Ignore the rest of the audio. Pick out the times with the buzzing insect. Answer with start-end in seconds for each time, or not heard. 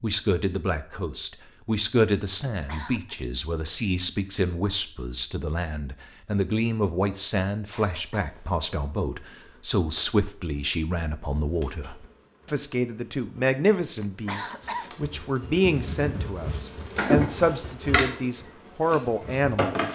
8.2-19.9.